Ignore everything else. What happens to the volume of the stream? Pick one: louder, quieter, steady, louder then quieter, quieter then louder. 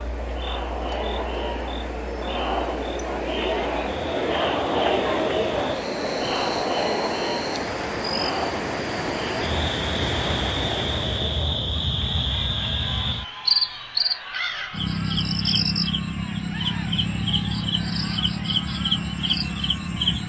louder.